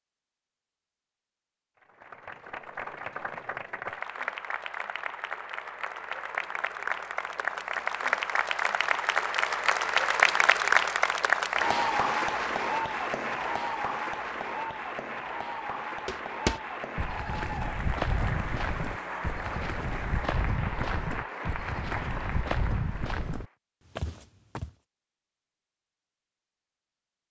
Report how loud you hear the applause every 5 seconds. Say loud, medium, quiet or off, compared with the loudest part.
medium, loud, loud, medium, medium, off.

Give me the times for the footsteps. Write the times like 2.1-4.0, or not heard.
16.1-24.7.